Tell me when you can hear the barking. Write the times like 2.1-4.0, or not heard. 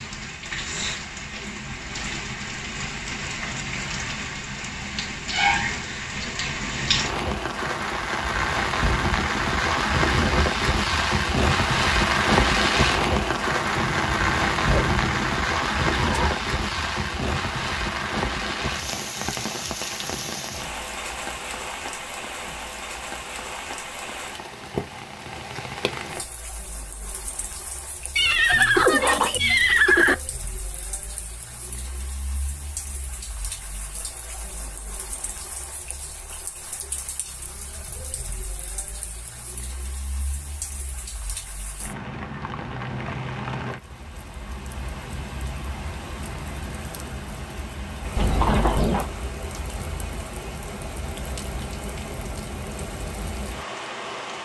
13.8-15.4.